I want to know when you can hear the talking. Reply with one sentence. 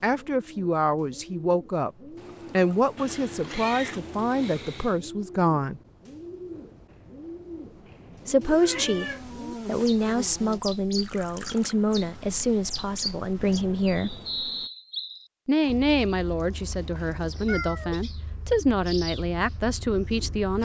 You can hear the talking from 0.0 to 1.9 s, from 2.5 to 5.8 s, from 8.2 to 14.2 s and from 15.4 to 20.6 s.